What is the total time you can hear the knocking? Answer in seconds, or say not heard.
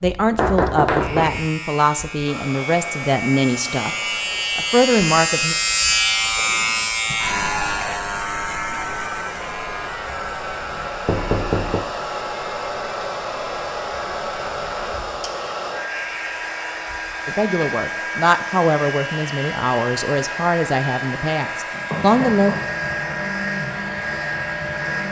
3 s.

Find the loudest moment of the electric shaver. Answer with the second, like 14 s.
6 s.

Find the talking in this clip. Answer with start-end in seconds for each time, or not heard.
0.0-4.0, 4.5-5.5, 17.2-22.6.